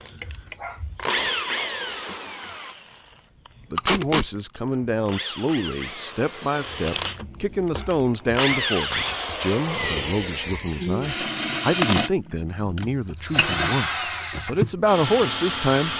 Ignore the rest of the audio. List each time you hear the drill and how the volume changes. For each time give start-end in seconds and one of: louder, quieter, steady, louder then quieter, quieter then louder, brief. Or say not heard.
0.0-15.9 quieter then louder.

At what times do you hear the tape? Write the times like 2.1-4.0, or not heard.
3.8-4.3.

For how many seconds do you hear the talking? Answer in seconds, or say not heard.
12 s.